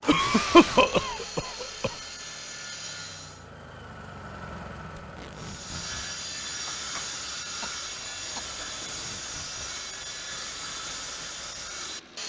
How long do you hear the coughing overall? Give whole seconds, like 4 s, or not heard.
4 s.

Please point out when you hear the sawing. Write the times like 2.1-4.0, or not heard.
0.0-3.5, 5.3-12.2.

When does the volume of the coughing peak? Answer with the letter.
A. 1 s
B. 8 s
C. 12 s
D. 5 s
A.